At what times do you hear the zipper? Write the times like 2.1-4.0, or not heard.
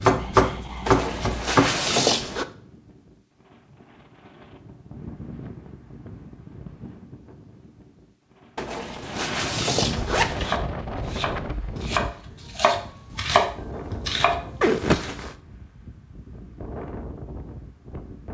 0.8-2.5, 8.6-10.6, 14.6-15.3.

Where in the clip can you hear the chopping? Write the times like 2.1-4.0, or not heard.
0.0-1.7, 10.3-15.1.